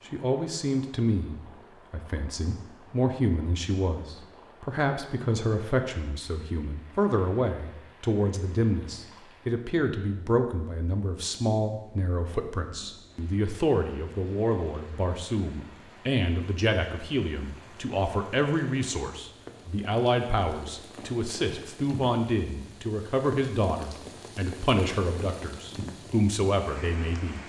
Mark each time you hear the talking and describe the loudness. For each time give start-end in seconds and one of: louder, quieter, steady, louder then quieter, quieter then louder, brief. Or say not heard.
0.1-27.4 steady.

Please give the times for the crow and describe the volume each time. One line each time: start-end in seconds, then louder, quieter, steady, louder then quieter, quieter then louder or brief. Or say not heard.
not heard.